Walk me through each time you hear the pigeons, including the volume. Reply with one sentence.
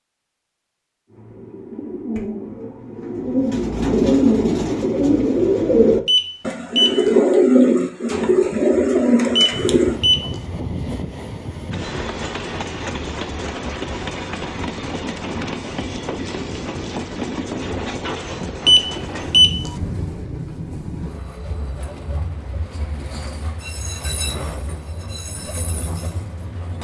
You can hear the pigeons from 1.1 to 10.0 s, getting louder.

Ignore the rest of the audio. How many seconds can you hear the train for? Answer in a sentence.
You can hear the train for 17 seconds altogether.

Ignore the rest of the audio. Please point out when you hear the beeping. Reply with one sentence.
The beeping can be heard from 6.0 to 7.1 s, from 9.3 to 10.4 s and from 18.6 to 19.7 s.